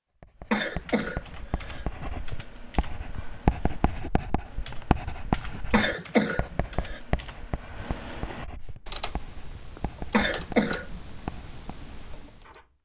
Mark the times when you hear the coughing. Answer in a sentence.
The coughing can be heard from 0.5 to 1.9 s, from 5.7 to 7.0 s and from 10.1 to 11.0 s.